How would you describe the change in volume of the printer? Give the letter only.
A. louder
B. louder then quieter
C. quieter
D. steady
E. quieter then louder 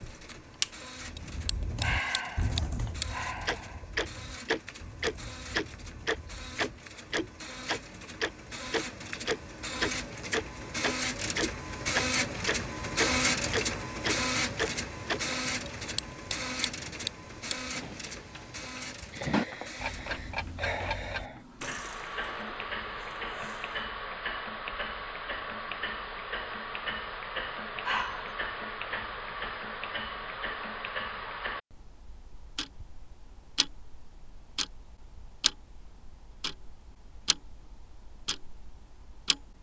B.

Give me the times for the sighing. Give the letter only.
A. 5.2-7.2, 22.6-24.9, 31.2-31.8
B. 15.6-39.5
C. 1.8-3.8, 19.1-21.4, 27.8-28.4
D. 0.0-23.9
C.